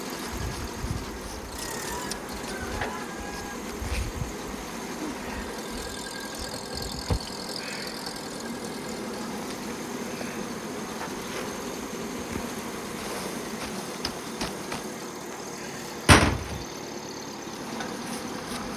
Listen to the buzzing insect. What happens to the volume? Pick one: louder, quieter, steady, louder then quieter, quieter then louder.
louder.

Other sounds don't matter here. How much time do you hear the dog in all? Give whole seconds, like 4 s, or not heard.
not heard.